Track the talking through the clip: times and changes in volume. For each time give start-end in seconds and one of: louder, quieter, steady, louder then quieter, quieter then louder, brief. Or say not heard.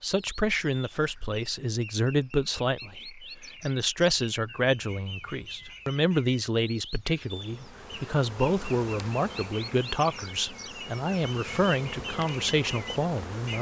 0.0-13.5 steady.